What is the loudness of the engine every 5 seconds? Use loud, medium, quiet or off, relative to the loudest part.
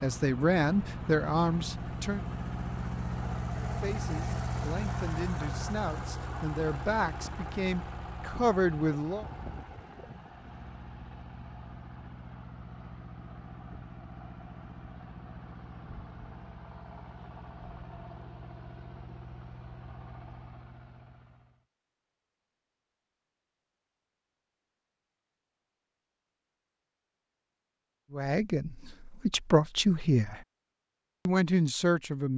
loud, loud, medium, medium, quiet, off, off.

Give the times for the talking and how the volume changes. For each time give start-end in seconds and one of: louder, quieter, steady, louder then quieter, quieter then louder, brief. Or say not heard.
0.0-2.2 brief
3.6-9.2 louder
28.1-30.4 brief
31.2-32.3 brief.